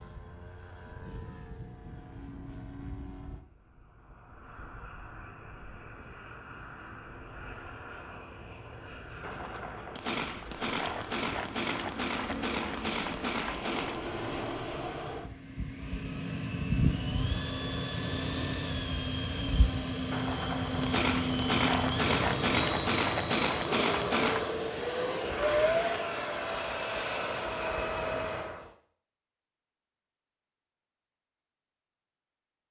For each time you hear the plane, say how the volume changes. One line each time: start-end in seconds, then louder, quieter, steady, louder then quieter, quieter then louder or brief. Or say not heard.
0.0-28.7 louder.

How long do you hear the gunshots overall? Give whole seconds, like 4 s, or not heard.
9 s.